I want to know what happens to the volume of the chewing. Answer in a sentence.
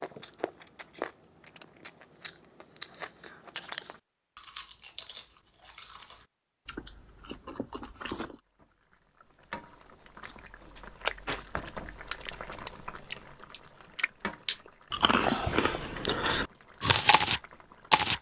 The volume of the chewing goes up.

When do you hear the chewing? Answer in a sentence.
The chewing can be heard from 0.0 to 8.3 s and from 10.2 to 18.1 s.